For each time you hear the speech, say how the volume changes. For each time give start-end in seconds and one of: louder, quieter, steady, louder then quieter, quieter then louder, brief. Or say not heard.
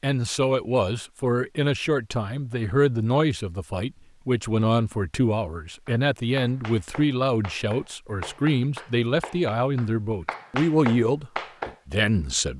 0.0-12.5 steady.